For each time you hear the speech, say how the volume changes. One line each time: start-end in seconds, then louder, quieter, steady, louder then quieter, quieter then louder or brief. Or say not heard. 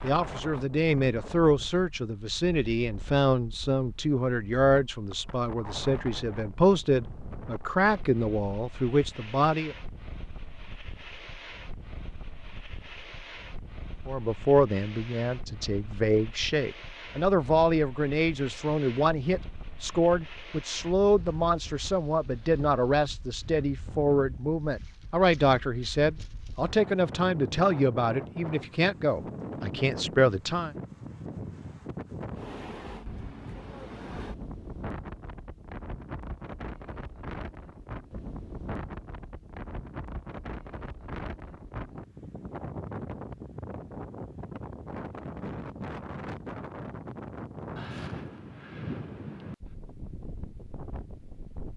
0.0-9.8 steady
14.1-30.7 steady.